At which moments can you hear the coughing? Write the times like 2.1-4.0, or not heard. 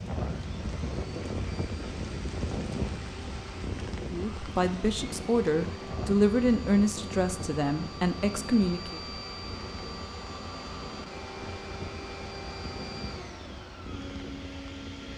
not heard.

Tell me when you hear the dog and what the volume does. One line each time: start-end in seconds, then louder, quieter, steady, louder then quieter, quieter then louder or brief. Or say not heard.
not heard.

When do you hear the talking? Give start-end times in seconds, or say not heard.
4.1-9.0.